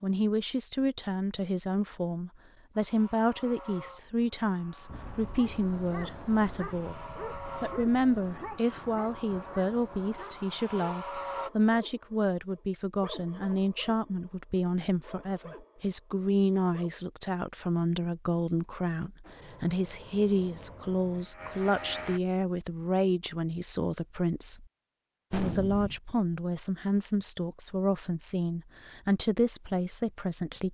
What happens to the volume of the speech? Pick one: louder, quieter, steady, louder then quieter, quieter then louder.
steady.